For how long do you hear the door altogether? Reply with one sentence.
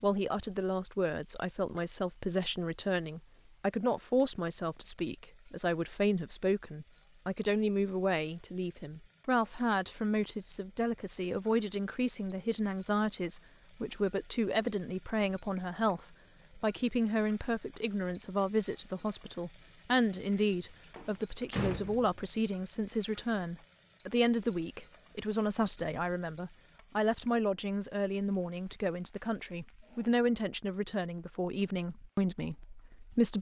You can hear the door for 2 seconds altogether.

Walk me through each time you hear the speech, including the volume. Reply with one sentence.
The speech can be heard from 0.0 to 33.3 s, at a steady volume.